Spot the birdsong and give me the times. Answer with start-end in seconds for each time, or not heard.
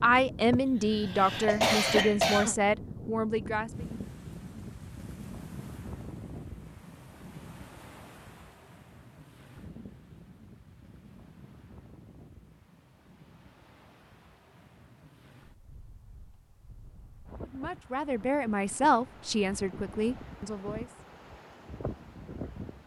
not heard.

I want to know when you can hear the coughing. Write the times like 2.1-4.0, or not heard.
0.5-2.5.